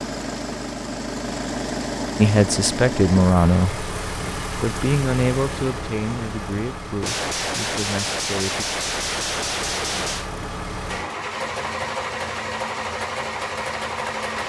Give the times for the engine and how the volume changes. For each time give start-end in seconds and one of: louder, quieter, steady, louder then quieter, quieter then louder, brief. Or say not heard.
0.0-14.4 quieter then louder.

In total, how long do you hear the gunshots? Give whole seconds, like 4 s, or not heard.
3 s.